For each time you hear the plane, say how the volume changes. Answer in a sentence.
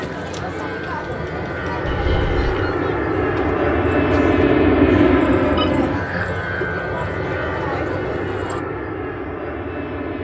The plane can be heard from 0.0 to 10.1 s, getting louder then quieter.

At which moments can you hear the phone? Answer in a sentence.
You can hear the phone from 1.9 to 2.8 s and from 5.5 to 6.7 s.